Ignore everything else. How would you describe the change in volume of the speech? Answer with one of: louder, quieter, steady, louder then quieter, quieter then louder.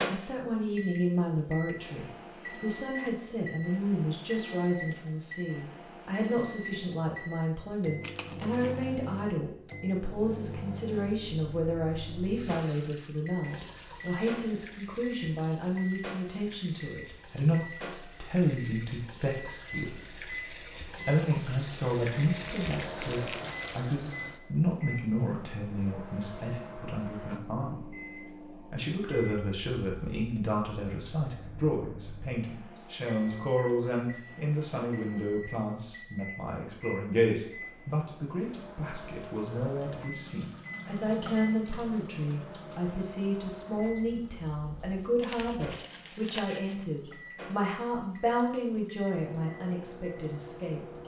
steady.